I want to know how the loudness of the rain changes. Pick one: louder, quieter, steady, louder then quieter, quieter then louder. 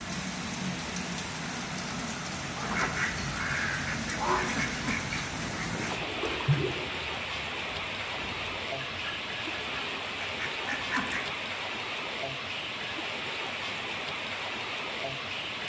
steady.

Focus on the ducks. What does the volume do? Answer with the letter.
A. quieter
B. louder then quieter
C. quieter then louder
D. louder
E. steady
C.